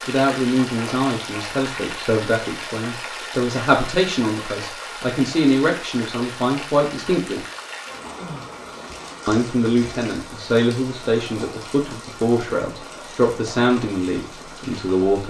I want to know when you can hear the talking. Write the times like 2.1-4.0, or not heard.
0.1-7.4, 9.2-15.2.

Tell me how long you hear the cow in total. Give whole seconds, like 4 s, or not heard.
not heard.